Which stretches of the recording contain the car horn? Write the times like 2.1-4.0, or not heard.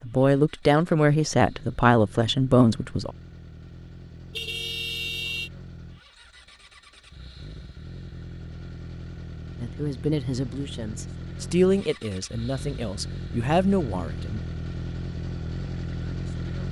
4.3-5.5.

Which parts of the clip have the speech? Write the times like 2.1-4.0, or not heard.
0.0-3.1, 9.6-14.4.